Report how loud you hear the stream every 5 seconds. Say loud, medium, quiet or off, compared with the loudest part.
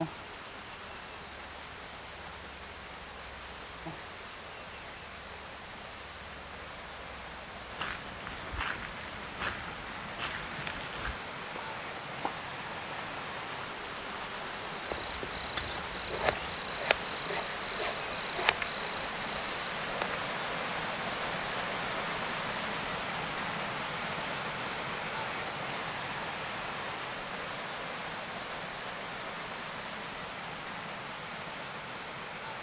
medium, medium, medium, loud, loud, loud, medium.